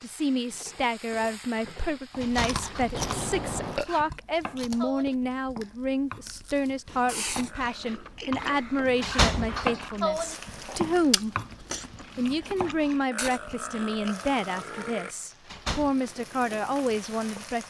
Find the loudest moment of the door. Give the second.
9 s.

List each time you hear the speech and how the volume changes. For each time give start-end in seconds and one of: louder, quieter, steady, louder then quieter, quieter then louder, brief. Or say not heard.
0.0-11.3 steady
12.2-17.6 quieter then louder.